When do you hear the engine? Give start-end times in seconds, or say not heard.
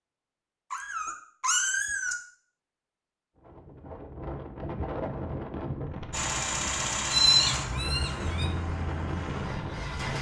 6.1-10.1.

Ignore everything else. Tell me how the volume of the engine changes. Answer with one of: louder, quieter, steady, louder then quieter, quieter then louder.
quieter.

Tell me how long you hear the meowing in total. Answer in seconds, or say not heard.
3 s.